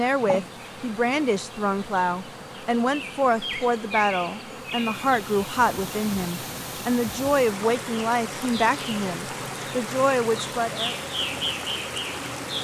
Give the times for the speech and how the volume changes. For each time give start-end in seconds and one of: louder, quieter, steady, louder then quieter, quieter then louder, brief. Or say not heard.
0.0-10.9 steady.